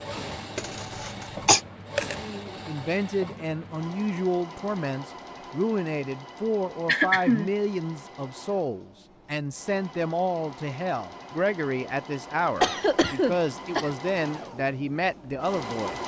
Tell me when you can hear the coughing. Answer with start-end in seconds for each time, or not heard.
0.6-1.6, 6.8-7.5, 12.6-13.9.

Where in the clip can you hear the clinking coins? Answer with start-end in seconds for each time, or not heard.
1.9-2.4.